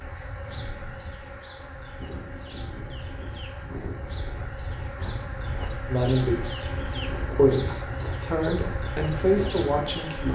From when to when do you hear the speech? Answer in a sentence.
You can hear the speech from 5.8 to 6.7 s and from 7.3 to 10.2 s.